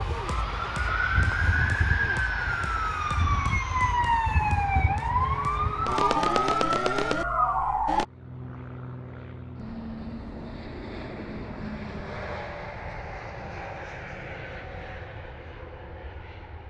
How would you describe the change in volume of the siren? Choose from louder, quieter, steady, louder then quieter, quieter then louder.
steady.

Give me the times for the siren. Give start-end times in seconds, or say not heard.
0.0-8.1.